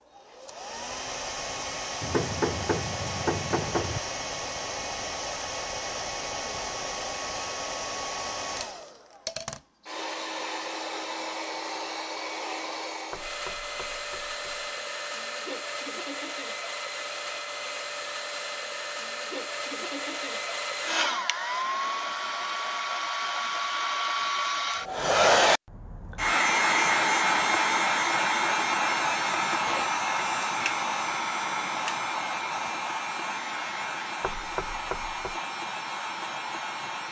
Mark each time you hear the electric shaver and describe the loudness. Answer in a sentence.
You can't hear the electric shaver here.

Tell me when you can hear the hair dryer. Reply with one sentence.
You can hear the hair dryer from 0.1 to 37.0 s.